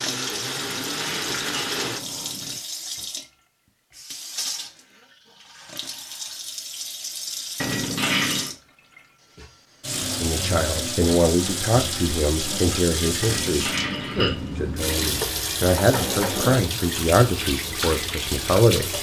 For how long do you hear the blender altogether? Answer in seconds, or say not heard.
2 s.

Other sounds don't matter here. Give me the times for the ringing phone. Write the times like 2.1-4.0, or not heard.
not heard.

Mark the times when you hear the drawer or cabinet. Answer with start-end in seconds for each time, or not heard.
15.2-16.6.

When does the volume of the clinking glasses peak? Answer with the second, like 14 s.
8 s.